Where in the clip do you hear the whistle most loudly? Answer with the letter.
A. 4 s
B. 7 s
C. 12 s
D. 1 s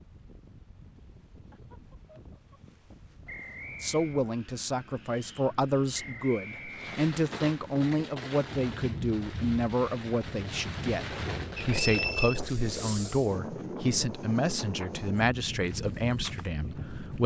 C.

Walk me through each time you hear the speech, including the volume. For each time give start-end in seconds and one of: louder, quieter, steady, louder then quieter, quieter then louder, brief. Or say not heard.
3.8-17.2 steady.